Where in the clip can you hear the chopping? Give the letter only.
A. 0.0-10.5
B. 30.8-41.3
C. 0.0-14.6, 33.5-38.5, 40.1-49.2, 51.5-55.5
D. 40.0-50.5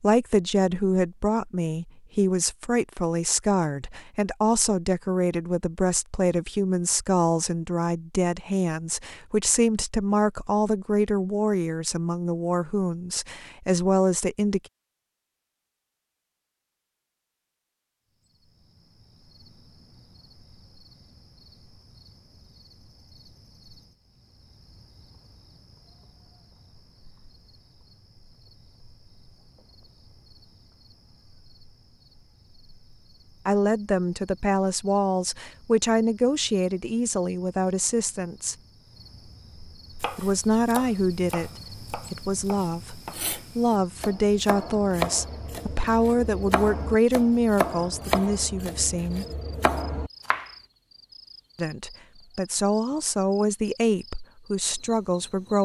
D.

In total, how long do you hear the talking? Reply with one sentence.
The talking can be heard for 33 seconds in total.